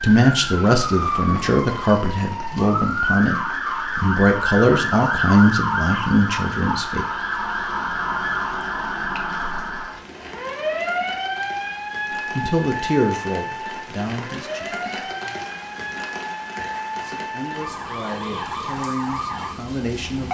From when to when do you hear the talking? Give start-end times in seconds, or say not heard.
0.0-7.0, 12.3-14.8, 17.0-20.3.